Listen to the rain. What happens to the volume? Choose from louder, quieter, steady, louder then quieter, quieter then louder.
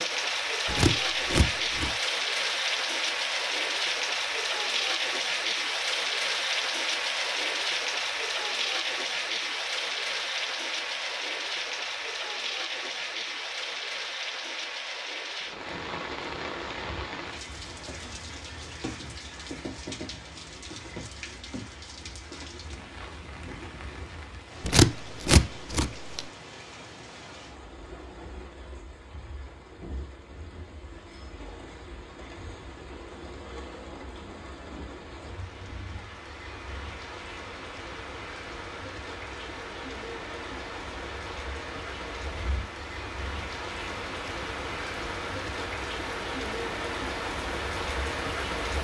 quieter then louder.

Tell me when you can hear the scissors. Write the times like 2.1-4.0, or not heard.
0.7-1.9, 24.6-26.3.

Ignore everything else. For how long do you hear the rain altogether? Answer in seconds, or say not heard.
49 s.